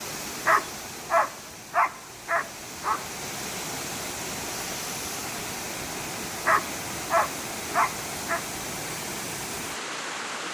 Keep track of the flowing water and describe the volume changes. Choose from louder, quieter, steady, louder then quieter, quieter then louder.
louder.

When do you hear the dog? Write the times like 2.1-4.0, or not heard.
0.5-3.0, 6.5-8.4.